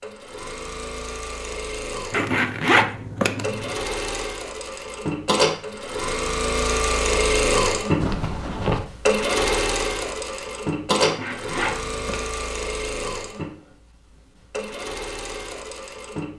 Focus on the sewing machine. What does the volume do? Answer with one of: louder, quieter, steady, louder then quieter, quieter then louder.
louder then quieter.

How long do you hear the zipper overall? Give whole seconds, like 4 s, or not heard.
4 s.